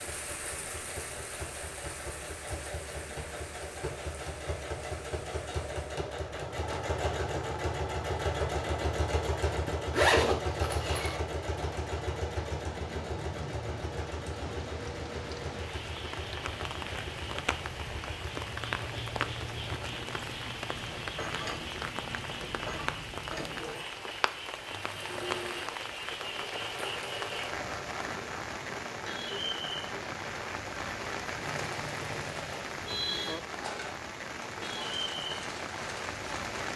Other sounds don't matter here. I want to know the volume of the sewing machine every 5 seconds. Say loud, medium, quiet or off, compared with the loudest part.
medium, loud, loud, medium, medium, medium, medium, medium.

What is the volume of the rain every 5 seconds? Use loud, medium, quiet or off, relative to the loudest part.
medium, medium, medium, loud, loud, loud, loud, loud.